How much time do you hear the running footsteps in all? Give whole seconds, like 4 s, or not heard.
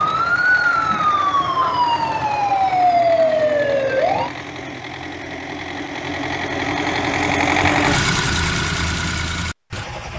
not heard.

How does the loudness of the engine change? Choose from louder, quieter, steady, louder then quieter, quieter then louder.
louder.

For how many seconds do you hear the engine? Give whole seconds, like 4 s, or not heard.
10 s.